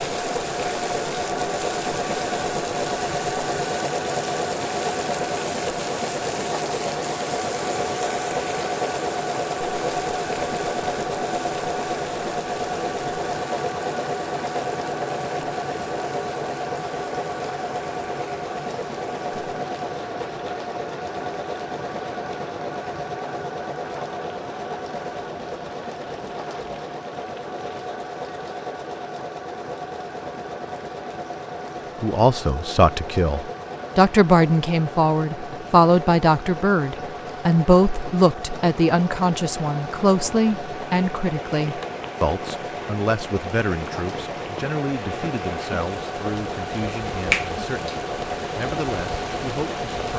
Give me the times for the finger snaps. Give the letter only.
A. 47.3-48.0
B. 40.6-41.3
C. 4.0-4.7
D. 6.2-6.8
A.